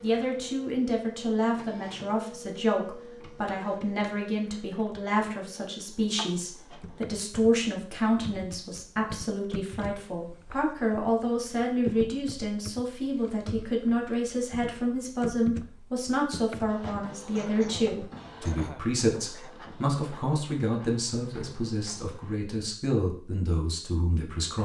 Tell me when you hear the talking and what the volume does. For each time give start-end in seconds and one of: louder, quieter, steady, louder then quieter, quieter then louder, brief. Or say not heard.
0.0-24.6 steady.